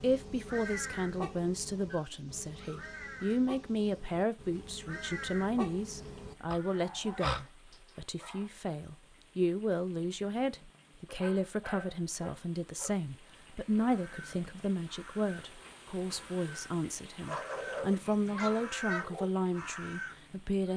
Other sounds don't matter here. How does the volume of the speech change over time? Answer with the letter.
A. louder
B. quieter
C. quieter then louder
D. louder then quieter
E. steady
E.